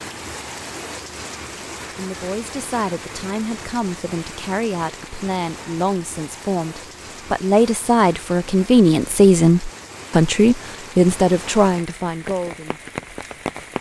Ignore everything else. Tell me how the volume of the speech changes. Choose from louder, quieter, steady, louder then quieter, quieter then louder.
louder.